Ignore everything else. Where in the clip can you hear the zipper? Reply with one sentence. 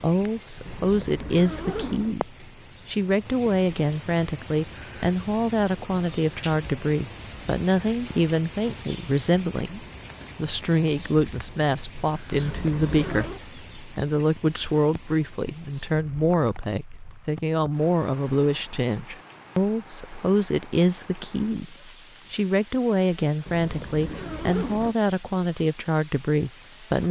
The zipper can be heard from 0.7 to 2.1 s, from 12.3 to 13.4 s and from 23.4 to 24.9 s.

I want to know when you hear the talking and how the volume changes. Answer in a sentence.
You can hear the talking from 0.0 to 27.0 s, at a steady volume.